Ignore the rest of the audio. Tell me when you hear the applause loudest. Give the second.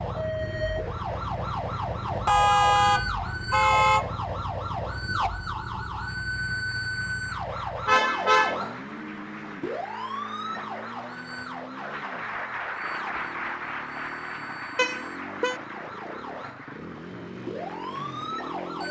13 s.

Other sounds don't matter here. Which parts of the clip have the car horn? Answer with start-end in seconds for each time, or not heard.
2.2-4.1, 7.8-8.6, 14.8-15.6.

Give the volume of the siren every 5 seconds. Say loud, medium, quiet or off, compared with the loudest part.
loud, loud, medium, medium.